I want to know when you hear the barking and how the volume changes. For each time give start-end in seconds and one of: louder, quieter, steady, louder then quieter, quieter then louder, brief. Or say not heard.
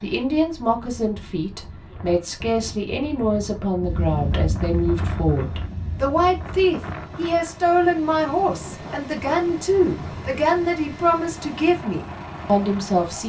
not heard.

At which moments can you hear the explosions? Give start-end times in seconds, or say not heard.
3.8-6.5.